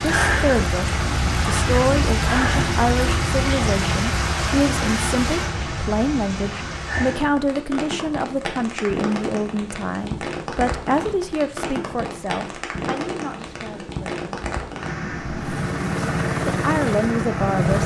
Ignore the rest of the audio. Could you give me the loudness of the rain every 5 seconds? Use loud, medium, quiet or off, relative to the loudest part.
loud, medium, medium, medium.